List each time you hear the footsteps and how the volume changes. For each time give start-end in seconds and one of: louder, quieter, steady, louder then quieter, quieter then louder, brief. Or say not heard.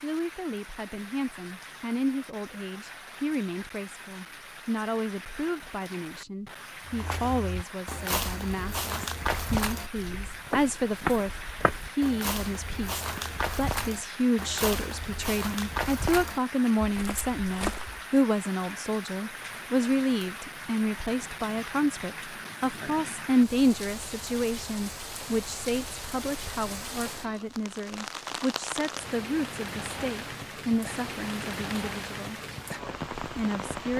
6.8-18.0 steady.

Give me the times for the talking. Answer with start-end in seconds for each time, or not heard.
0.0-32.4, 33.4-33.9.